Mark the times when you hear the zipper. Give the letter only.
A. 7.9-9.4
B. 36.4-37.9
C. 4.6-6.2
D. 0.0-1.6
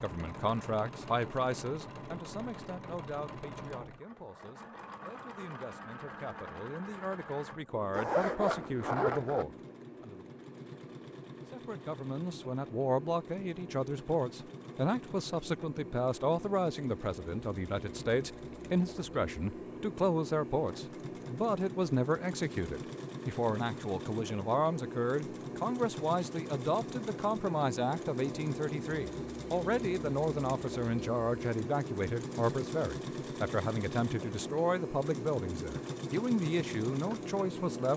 A.